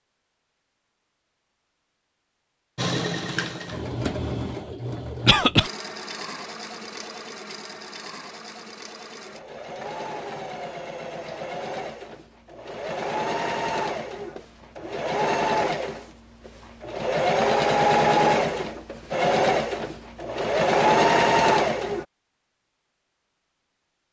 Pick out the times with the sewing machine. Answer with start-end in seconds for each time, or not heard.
2.8-22.1.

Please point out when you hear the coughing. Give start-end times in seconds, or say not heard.
5.2-5.7.